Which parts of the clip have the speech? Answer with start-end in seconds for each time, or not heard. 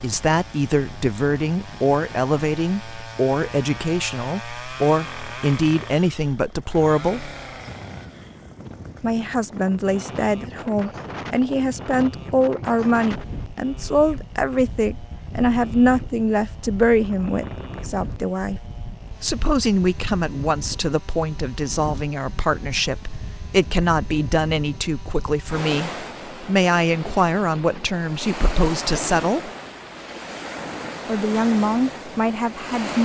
0.0-7.3, 9.0-18.6, 19.2-29.5, 31.1-32.9.